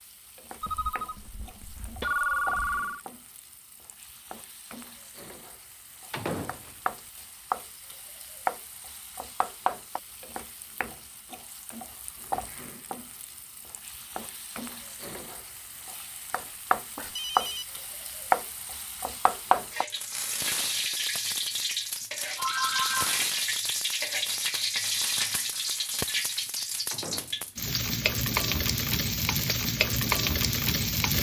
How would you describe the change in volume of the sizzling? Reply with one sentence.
The loudness of the sizzling goes up.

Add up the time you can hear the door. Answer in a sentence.
The door can be heard for 2 seconds in total.